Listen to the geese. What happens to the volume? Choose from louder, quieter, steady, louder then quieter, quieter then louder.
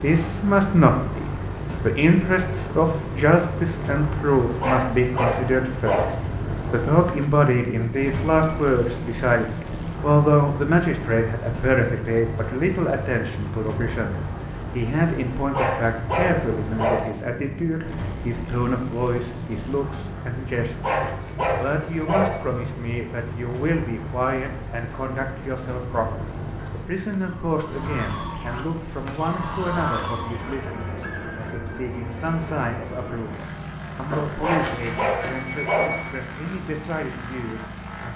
louder then quieter.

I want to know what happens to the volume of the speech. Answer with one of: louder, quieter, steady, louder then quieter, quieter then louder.
quieter.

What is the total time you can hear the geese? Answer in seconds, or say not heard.
5 s.